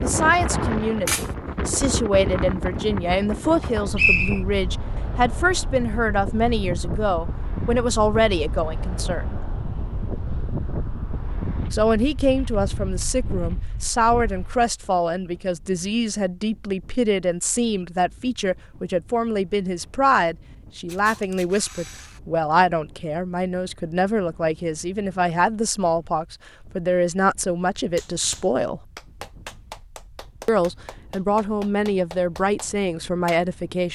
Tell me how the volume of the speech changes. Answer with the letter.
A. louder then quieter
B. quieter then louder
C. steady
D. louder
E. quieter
C.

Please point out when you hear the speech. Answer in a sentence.
You can hear the speech from 0.0 to 9.4 s, from 11.7 to 28.8 s and from 30.4 to 33.9 s.